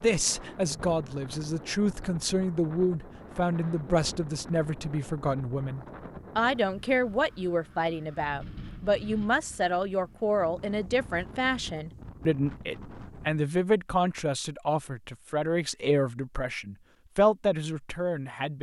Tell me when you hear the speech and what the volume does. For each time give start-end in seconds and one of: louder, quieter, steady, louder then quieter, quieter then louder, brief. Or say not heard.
0.0-18.5 steady.